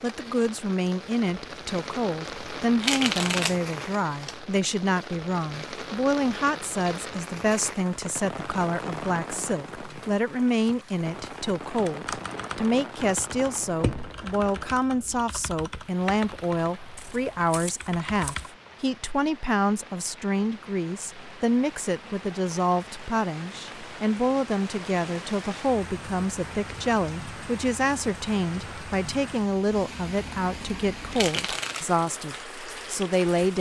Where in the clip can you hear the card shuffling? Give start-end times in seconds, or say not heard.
2.8-4.3, 16.9-18.5, 31.1-31.9.